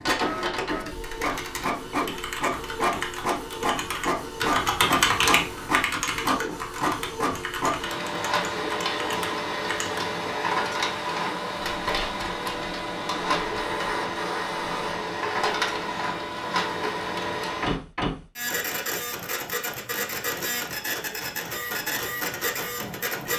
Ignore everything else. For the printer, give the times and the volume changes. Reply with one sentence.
The printer can be heard from 0.0 to 23.3 s, at a steady volume.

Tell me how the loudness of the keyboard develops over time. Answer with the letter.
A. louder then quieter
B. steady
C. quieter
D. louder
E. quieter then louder
A.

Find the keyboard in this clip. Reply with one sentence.
You can hear the keyboard from 1.0 to 10.2 s.